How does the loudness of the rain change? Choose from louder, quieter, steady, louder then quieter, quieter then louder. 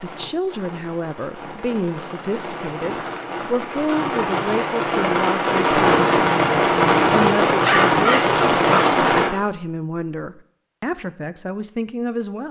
louder.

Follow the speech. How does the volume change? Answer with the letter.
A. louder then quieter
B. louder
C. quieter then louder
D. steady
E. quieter
D.